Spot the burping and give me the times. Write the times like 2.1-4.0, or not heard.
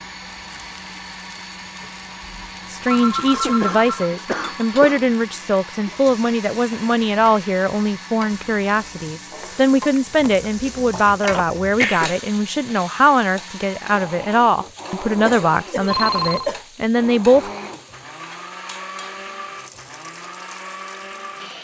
not heard.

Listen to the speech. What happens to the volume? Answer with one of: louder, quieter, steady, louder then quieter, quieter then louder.
steady.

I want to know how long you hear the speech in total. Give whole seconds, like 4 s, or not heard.
15 s.